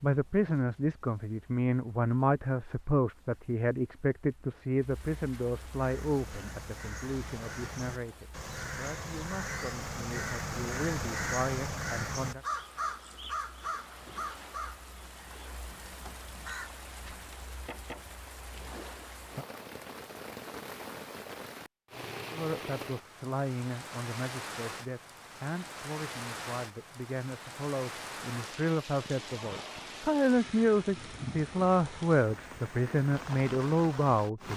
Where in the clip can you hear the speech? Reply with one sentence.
The speech can be heard from 0.0 to 12.4 s and from 22.3 to 34.5 s.